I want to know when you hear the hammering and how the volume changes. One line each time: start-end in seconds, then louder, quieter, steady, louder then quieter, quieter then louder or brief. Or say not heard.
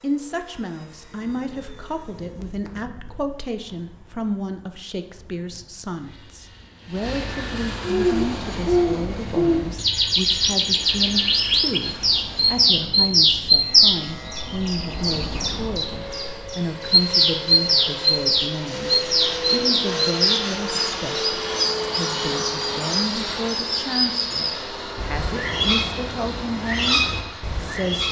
not heard.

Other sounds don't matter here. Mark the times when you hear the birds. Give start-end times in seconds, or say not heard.
7.8-28.0.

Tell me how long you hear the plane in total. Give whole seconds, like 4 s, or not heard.
28 s.